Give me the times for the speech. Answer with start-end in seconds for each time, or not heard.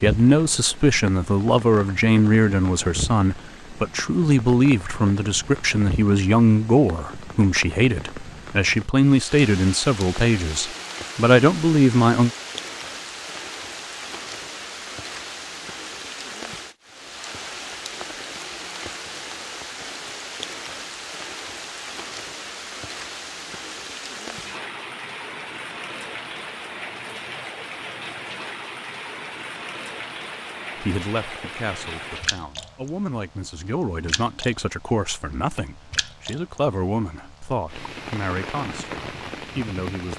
0.0-12.3, 30.8-40.1.